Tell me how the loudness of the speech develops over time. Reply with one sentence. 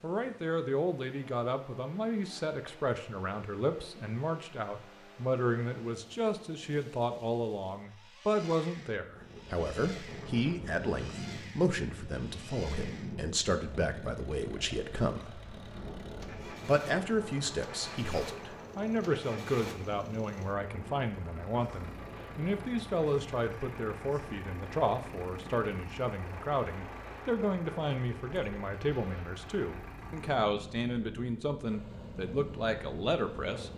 The loudness of the speech stays about the same.